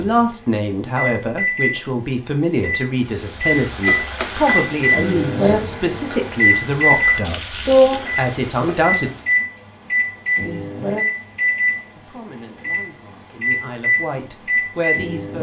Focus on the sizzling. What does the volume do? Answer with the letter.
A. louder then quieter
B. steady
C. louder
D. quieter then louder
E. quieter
D.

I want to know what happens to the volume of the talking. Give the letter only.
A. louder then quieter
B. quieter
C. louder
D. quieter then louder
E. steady
B.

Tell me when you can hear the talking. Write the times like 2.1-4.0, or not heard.
0.0-9.1, 11.9-15.3.